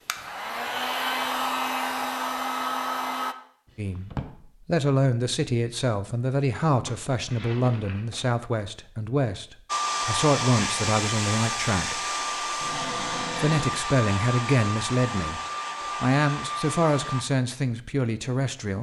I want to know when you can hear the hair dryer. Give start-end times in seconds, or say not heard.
0.0-3.4, 9.7-17.2.